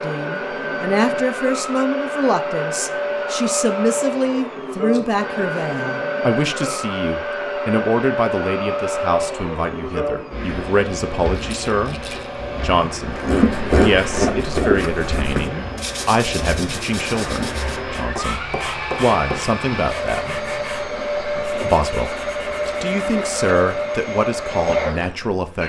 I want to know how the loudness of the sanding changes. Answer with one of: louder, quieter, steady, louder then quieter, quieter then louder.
quieter.